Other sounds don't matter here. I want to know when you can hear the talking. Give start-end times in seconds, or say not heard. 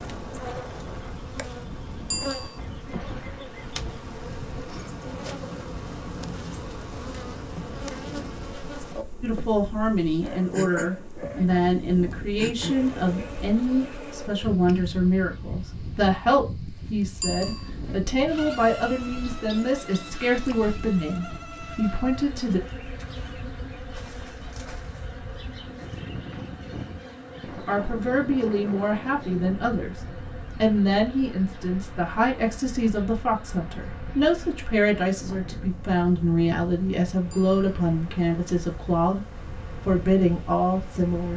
9.2-22.6, 27.6-29.9, 30.6-39.2, 39.9-41.3.